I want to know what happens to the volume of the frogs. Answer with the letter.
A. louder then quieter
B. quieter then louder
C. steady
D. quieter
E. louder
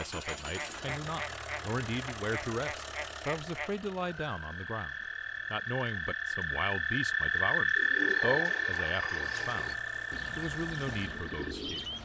A.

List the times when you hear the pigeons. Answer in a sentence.
The pigeons can be heard from 7.8 to 12.0 s.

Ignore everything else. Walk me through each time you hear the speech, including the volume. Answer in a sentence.
The speech can be heard from 0.0 to 11.9 s, at a steady volume.